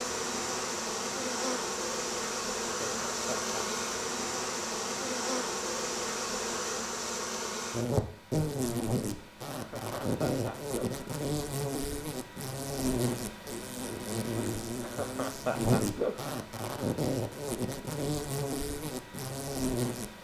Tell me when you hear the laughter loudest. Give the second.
16 s.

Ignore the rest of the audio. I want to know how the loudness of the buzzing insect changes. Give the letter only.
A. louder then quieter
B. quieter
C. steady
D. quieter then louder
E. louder
C.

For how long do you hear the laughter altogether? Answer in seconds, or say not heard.
4 s.